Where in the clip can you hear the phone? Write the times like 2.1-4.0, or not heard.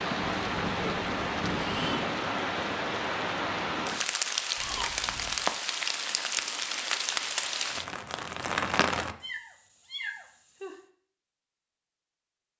not heard.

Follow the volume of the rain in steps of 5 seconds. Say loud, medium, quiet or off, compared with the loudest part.
loud, loud, off.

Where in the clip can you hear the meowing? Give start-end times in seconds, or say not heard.
0.2-2.1, 4.5-5.5, 9.2-10.8.